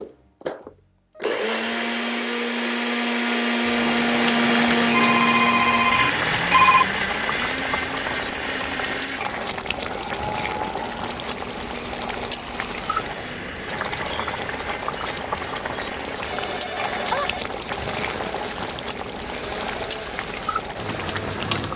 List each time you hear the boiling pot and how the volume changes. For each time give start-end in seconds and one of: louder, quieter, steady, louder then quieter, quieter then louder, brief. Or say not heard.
3.8-21.7 steady.